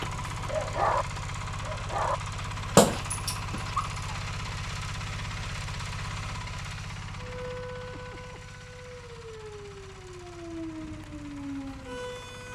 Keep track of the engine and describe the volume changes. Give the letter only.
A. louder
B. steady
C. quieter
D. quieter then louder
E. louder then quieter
C.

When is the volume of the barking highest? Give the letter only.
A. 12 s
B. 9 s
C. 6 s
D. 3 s
D.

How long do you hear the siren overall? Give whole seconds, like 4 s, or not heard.
5 s.